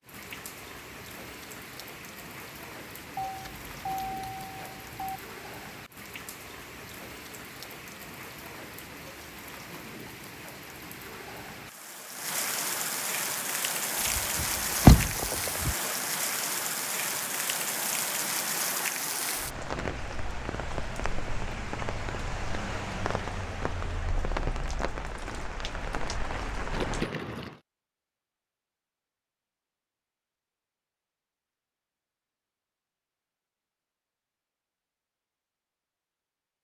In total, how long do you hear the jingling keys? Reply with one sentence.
You can hear the jingling keys for 5 seconds altogether.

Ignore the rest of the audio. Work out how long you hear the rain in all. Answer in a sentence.
You can hear the rain for 27 seconds altogether.